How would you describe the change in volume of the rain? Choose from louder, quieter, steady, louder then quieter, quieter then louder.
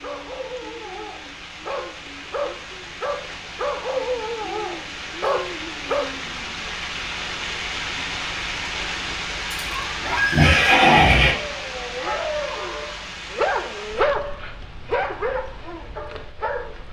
louder then quieter.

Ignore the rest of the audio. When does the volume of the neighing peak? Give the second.
11 s.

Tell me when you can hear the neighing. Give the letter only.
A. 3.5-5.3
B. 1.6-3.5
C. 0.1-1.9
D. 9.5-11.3
D.